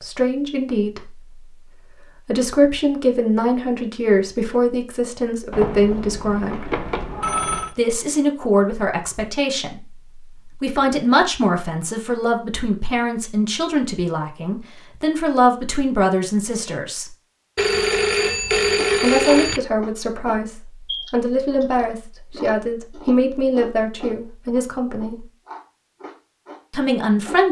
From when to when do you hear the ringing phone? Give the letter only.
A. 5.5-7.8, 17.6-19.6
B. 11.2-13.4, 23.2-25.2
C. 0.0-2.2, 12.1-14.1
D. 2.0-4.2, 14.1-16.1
A.